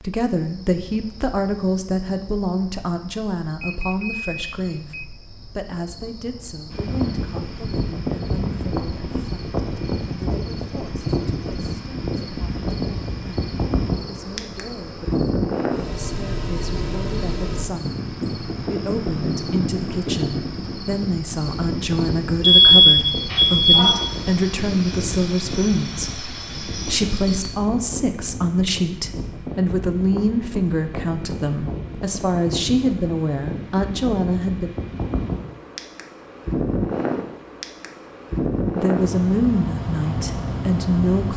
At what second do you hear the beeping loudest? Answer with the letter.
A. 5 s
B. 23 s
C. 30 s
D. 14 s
B.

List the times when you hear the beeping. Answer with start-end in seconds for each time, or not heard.
3.6-5.0, 22.4-24.1.